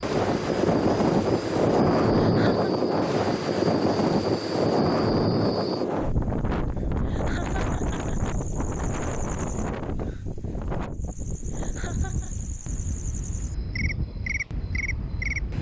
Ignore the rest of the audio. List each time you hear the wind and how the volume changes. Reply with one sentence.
The wind can be heard from 0.0 to 15.5 s, getting quieter.